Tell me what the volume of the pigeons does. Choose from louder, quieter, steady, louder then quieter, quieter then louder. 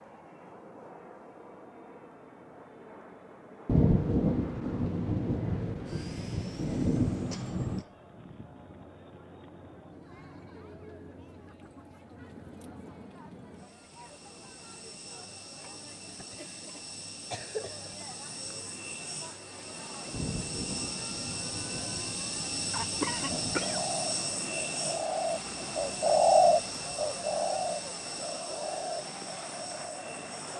louder then quieter.